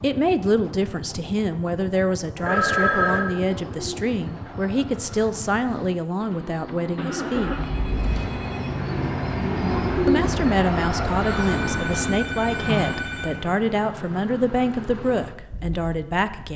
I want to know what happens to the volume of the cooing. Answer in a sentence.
The volume of the cooing goes up.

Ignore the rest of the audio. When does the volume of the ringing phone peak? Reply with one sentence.
The loudest moment of the ringing phone is at 3 seconds.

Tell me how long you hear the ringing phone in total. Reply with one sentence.
You can hear the ringing phone for 4 seconds altogether.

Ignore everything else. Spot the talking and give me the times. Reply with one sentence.
The talking can be heard from 0.0 to 7.5 s and from 10.1 to 16.5 s.